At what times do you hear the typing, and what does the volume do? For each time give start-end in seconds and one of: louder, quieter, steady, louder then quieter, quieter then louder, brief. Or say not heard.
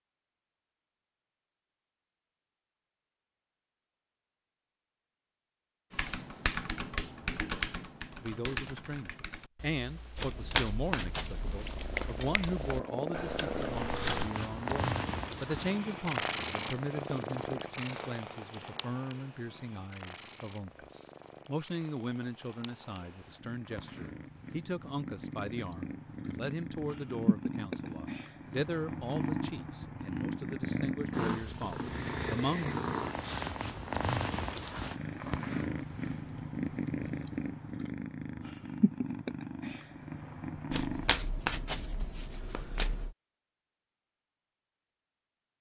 5.9-14.3 quieter then louder.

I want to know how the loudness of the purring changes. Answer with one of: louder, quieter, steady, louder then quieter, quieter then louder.
quieter then louder.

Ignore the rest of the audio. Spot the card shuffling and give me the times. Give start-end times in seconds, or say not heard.
10.2-12.3, 40.7-43.1.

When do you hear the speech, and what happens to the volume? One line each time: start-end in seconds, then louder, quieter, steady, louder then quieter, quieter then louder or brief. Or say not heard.
8.2-32.7 steady.